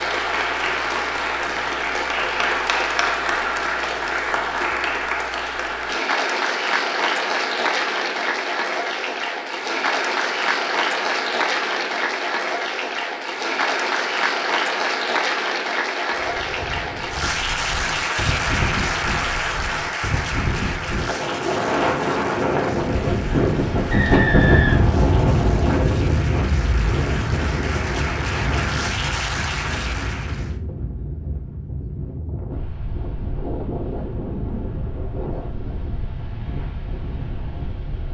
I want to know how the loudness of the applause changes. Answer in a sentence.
The loudness of the applause goes down.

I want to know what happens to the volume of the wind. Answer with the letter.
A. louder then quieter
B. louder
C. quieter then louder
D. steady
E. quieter
A.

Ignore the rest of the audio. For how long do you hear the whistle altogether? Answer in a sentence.
You can hear the whistle for 2 seconds altogether.